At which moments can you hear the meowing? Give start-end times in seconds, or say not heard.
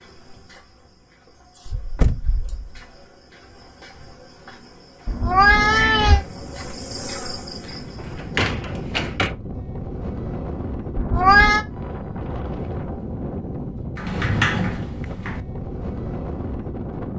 5.0-6.2, 10.9-11.7.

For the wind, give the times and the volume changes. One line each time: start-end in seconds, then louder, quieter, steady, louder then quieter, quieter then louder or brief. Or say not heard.
5.5-17.1 louder.